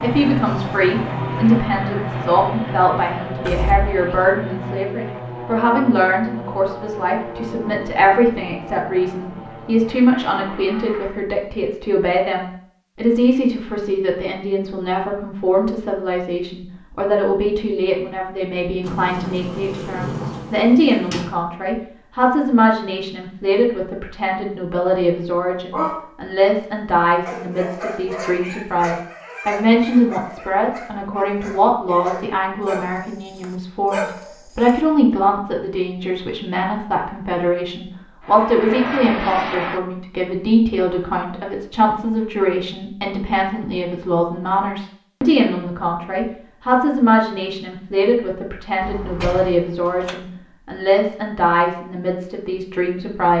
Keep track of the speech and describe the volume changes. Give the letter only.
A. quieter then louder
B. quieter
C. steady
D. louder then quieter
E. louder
C.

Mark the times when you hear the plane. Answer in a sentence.
You can hear the plane from 0.0 to 11.2 s and from 38.2 to 39.8 s.